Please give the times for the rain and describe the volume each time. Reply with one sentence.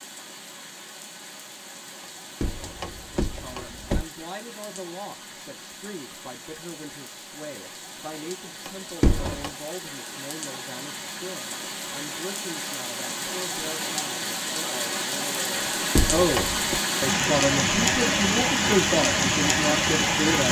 You can hear the rain from 0.0 to 20.4 s, getting louder.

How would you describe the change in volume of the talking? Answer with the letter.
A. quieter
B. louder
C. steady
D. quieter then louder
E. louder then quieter
B.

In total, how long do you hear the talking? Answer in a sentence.
You can hear the talking for 17 seconds altogether.